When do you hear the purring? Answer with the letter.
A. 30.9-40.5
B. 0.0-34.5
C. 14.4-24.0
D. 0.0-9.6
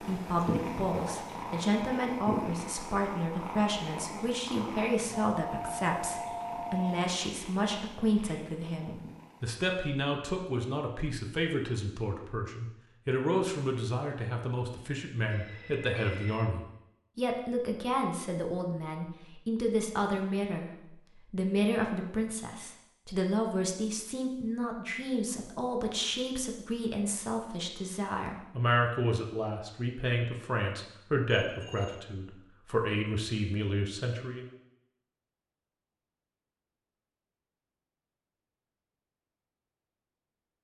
D.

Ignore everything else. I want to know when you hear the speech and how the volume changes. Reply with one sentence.
You can hear the speech from 0.0 to 34.5 s, at a steady volume.